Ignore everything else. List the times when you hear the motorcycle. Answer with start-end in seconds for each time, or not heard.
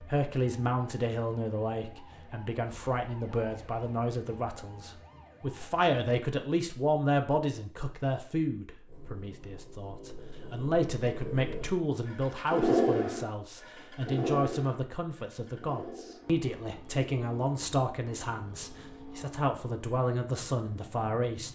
8.8-21.5.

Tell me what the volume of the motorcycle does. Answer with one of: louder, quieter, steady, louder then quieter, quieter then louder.
louder then quieter.